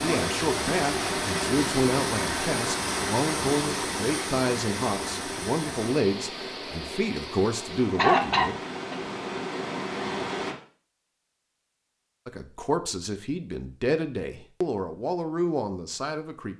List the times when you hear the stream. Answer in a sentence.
You can hear the stream from 0.0 to 10.6 s.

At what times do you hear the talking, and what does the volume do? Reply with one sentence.
You can hear the talking from 0.0 to 8.6 s, at a steady volume; and from 12.2 to 16.5 s, at a steady volume.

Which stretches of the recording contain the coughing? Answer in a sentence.
You can hear the coughing from 8.0 to 8.9 s.